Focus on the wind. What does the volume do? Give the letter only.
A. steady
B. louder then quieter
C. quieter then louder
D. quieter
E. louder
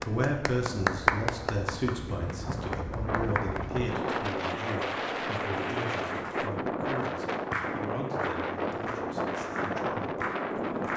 E.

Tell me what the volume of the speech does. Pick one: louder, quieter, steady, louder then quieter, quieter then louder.
quieter.